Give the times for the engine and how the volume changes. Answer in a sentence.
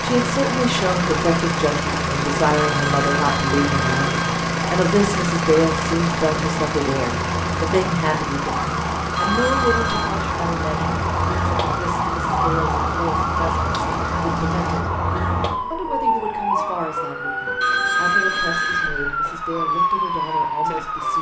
The engine can be heard from 0.0 to 14.8 s, getting quieter.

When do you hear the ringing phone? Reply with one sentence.
You can hear the ringing phone from 2.5 to 4.2 s, from 9.2 to 10.1 s and from 17.6 to 18.9 s.